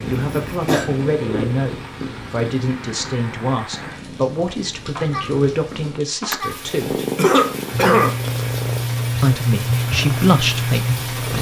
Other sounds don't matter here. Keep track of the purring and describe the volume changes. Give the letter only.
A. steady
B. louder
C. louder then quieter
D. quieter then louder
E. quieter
D.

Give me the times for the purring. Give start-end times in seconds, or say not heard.
0.0-11.3.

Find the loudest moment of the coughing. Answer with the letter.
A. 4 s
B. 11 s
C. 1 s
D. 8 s
D.